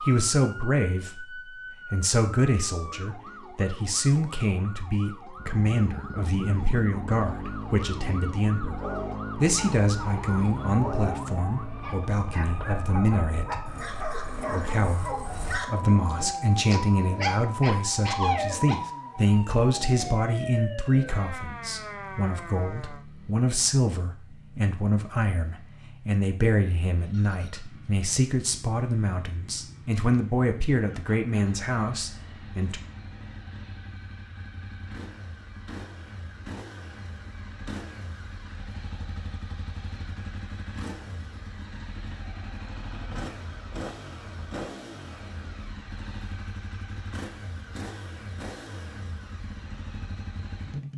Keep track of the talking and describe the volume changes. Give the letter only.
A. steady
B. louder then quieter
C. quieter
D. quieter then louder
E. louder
A.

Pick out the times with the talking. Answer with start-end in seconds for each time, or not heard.
0.0-32.8.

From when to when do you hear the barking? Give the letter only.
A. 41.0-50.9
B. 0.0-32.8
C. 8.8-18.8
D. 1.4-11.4
C.